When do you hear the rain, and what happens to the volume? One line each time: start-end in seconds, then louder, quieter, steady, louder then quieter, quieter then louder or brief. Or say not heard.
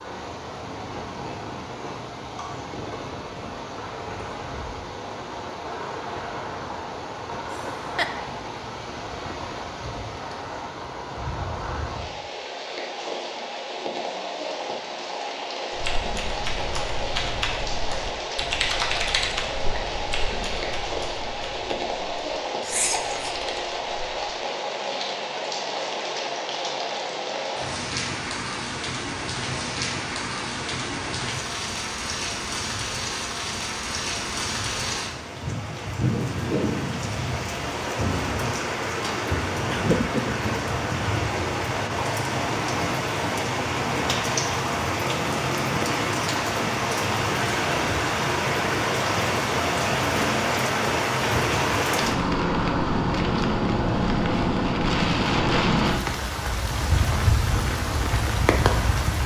0.0-59.2 louder.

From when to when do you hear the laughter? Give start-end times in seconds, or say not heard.
7.5-8.2, 22.6-23.4, 39.7-40.5.